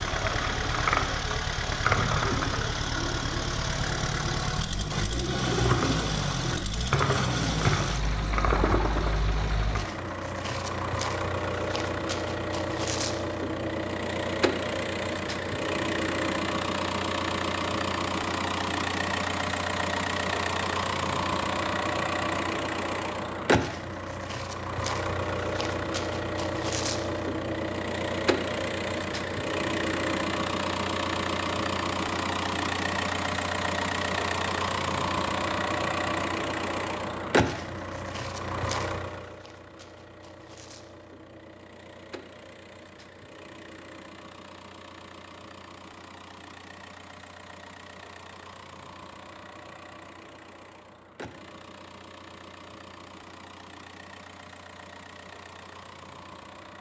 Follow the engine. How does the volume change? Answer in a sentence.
The volume of the engine goes down.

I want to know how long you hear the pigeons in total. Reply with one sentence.
The pigeons can be heard for 10 seconds in total.